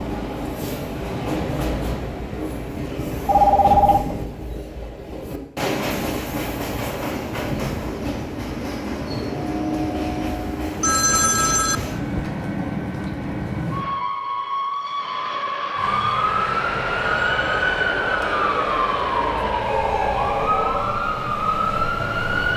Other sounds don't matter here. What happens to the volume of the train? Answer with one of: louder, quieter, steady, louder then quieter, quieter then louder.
steady.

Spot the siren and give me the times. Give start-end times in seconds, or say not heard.
15.8-22.5.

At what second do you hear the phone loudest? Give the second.
4 s.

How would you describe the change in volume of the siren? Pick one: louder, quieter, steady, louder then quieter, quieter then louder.
steady.